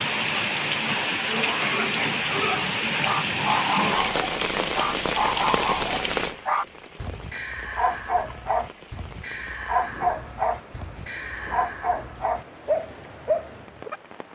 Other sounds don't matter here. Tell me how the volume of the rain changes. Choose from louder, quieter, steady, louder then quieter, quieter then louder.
quieter.